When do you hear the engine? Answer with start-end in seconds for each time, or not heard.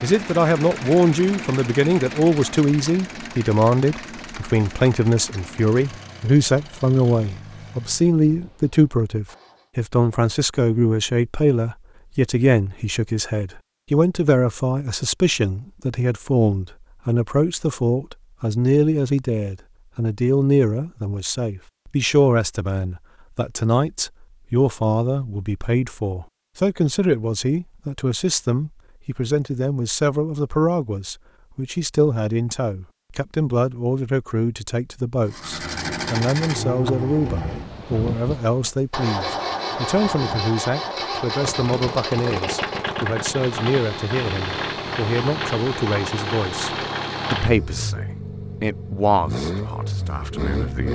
0.0-9.7, 35.2-50.9.